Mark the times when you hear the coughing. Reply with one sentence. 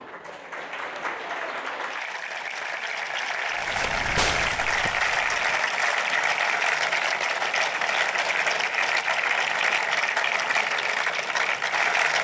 The coughing can't be heard in this clip.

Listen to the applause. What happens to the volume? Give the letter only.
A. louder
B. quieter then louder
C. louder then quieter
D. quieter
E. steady
A.